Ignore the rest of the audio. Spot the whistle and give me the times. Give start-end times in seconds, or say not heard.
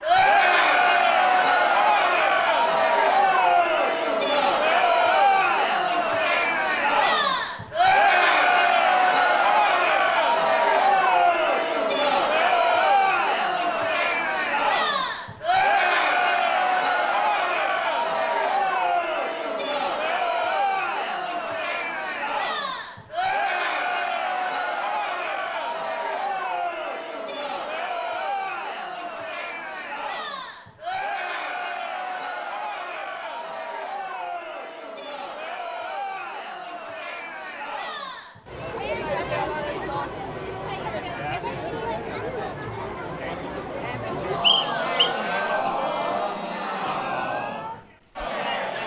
44.4-45.1.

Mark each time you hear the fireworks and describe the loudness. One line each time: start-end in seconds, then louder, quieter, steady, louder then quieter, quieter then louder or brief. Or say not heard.
not heard.